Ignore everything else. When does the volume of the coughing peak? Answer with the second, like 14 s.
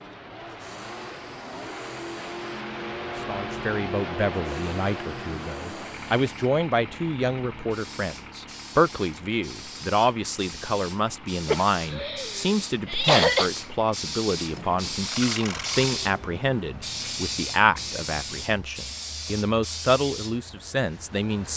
13 s.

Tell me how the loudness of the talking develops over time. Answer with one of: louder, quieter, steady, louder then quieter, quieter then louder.
steady.